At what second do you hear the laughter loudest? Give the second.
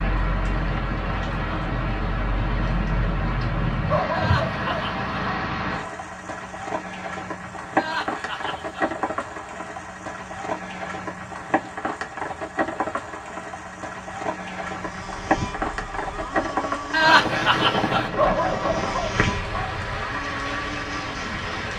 17 s.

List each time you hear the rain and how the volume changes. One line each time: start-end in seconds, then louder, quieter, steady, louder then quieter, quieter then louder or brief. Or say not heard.
0.0-21.7 steady.